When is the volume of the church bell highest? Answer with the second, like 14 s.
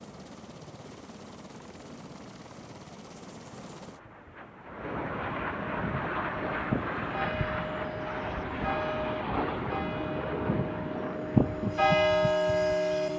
12 s.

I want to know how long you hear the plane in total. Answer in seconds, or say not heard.
13 s.